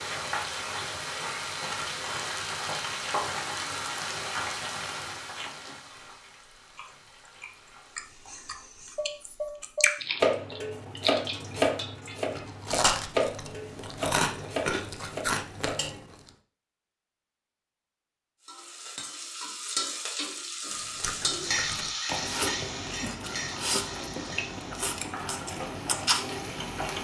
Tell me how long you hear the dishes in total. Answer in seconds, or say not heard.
7 s.